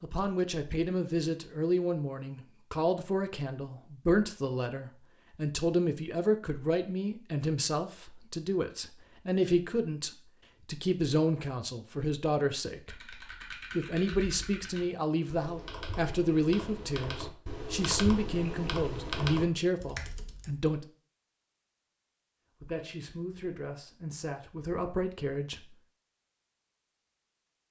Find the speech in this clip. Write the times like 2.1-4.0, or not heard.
0.0-20.9, 22.6-25.8.